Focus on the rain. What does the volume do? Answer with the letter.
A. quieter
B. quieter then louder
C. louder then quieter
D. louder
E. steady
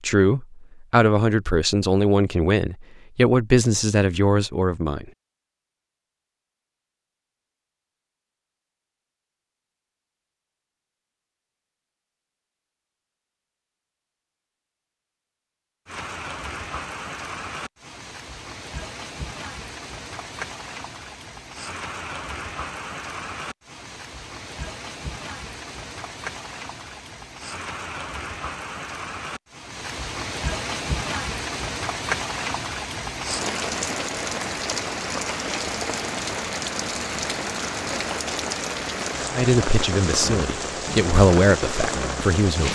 D.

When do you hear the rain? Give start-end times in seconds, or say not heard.
15.8-42.7.